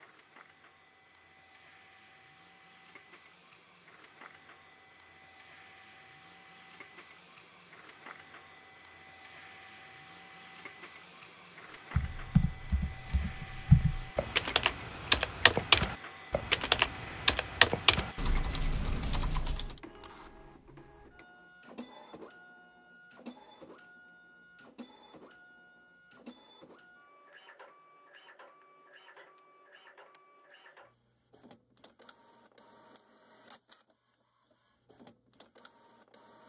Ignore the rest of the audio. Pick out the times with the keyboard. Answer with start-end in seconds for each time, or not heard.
11.9-19.8.